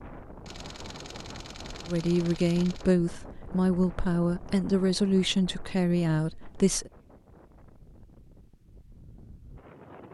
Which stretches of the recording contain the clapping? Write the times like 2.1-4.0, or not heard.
not heard.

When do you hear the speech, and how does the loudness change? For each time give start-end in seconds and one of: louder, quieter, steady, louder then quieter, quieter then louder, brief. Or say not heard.
1.9-6.9 steady.